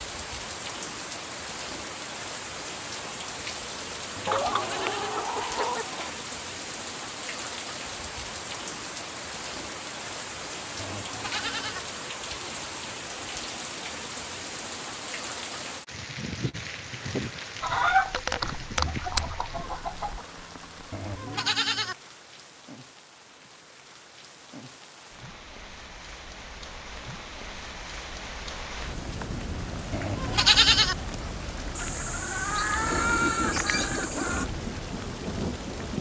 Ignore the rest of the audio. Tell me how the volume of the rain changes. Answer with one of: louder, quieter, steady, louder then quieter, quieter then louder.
quieter then louder.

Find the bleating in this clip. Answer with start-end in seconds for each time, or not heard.
4.2-5.2, 10.8-11.8, 20.9-21.9, 29.9-30.9.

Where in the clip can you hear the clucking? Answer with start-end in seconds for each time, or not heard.
4.2-6.1, 17.6-20.2, 31.8-34.5.